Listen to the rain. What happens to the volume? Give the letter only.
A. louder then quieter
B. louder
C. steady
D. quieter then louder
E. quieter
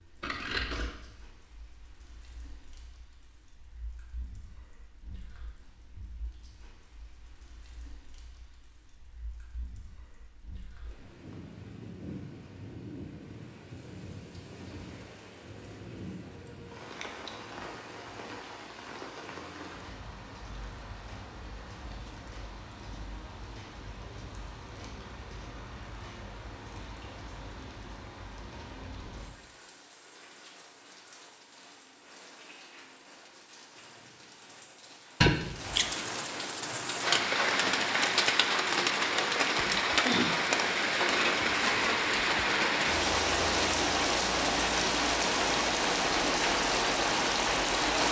B.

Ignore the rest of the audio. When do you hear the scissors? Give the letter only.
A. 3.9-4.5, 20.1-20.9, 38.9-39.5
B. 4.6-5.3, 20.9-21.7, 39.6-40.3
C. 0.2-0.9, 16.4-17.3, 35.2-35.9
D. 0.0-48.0
C.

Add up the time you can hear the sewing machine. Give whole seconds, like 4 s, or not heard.
not heard.